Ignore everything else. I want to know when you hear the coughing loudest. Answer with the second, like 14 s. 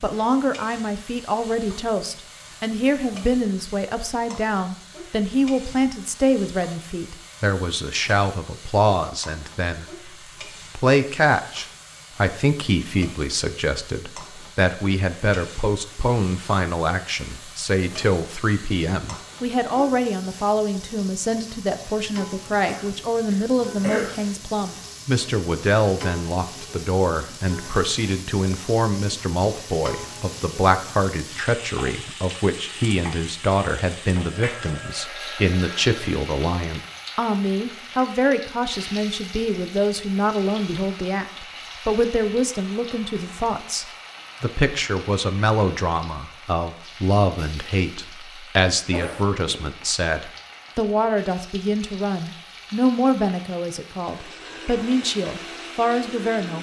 24 s.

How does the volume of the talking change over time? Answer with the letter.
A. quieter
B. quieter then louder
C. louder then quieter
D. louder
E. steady
E.